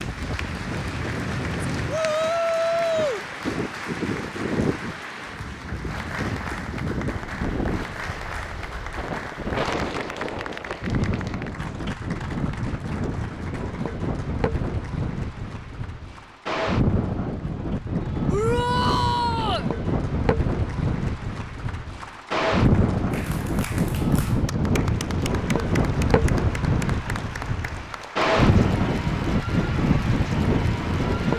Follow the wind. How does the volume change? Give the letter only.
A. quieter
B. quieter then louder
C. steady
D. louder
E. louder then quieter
D.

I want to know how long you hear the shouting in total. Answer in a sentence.
The shouting can be heard for 3 seconds in total.